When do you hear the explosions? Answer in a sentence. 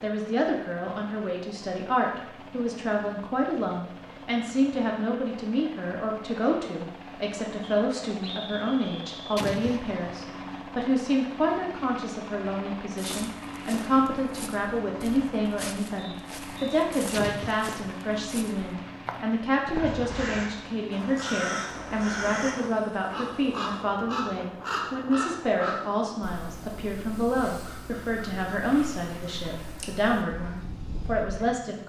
You can hear the explosions from 9.3 to 10.2 s and from 17.1 to 17.8 s.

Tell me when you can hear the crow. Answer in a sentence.
The crow can be heard from 19.7 to 31.4 s.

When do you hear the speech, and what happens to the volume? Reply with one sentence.
The speech can be heard from 0.0 to 31.8 s, at a steady volume.